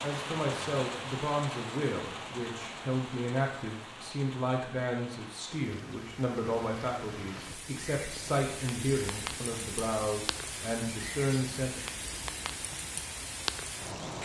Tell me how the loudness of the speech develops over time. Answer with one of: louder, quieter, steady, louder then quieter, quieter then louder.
steady.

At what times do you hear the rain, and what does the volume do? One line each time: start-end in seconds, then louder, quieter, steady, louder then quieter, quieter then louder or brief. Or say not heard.
0.0-14.2 quieter then louder.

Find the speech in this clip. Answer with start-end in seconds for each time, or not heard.
0.0-11.8.